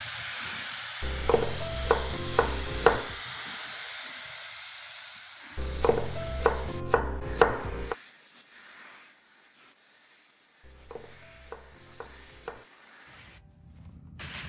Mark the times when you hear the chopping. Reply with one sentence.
You can hear the chopping from 1.0 to 3.1 s, from 5.5 to 8.0 s and from 10.6 to 12.7 s.